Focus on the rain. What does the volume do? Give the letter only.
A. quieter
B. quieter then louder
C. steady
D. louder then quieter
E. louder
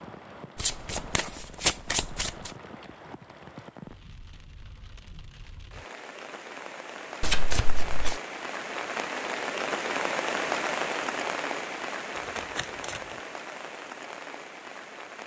D.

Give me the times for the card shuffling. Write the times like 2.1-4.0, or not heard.
0.6-2.3, 7.2-8.2, 12.2-13.0.